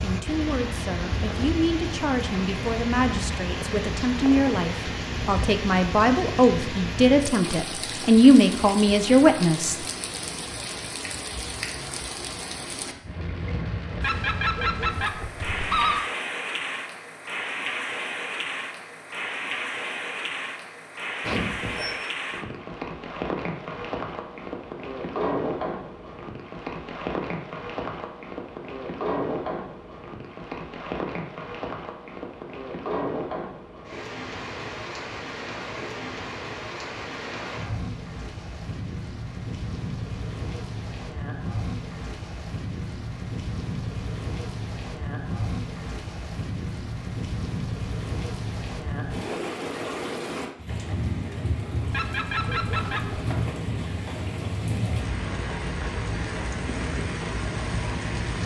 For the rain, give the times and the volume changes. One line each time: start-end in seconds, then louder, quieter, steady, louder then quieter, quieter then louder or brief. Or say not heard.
0.0-58.4 steady.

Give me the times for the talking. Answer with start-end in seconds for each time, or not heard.
0.0-9.8.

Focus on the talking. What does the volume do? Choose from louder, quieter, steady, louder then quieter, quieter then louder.
louder.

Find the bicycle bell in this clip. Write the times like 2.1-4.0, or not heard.
21.2-22.0.